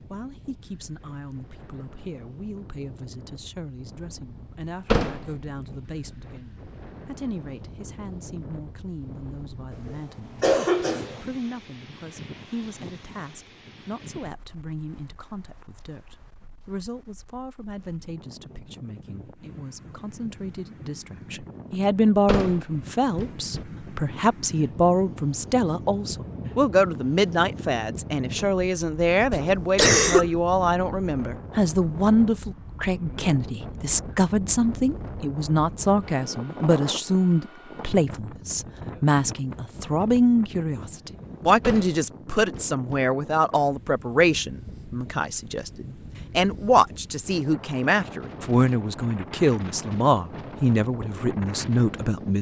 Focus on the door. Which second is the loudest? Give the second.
5 s.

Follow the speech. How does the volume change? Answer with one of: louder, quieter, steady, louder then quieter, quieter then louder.
louder.